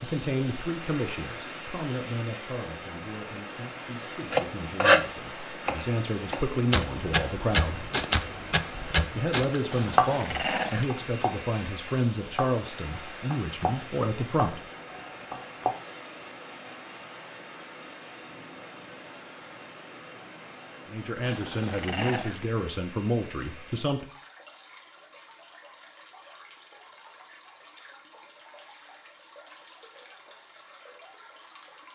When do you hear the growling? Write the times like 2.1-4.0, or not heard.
9.7-10.9, 21.2-22.4.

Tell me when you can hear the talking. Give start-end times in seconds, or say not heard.
0.0-7.9, 9.2-14.7, 20.9-24.1.